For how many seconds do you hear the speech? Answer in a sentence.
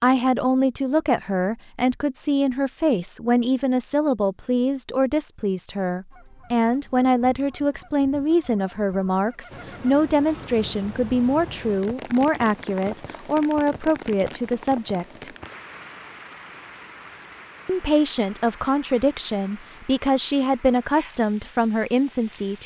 You can hear the speech for 20 seconds altogether.